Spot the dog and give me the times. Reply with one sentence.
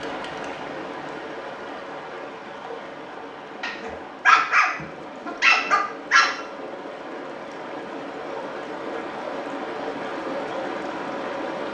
The dog can be heard from 3.6 to 6.3 s.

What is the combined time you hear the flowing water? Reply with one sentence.
You can hear the flowing water for 12 seconds altogether.